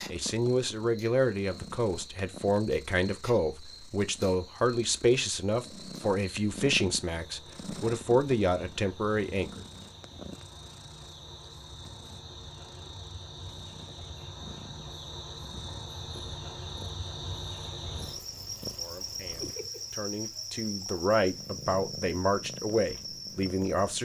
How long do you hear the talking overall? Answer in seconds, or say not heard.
15 s.